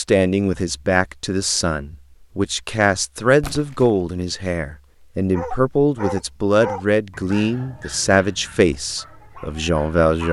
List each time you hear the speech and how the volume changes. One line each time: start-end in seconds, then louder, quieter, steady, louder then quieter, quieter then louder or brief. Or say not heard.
0.0-10.2 steady.